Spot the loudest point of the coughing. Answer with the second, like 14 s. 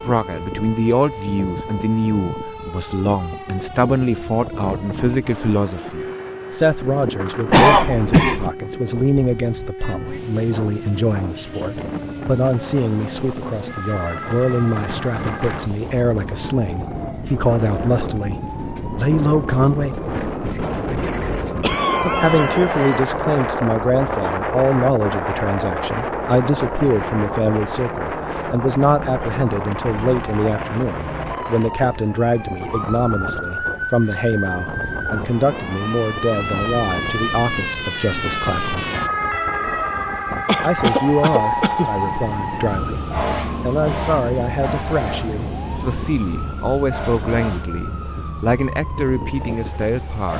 8 s.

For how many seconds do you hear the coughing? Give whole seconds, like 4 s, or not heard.
4 s.